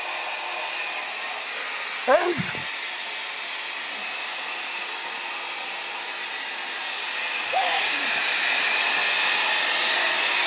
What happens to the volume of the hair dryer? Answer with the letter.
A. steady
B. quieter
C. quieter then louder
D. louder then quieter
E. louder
E.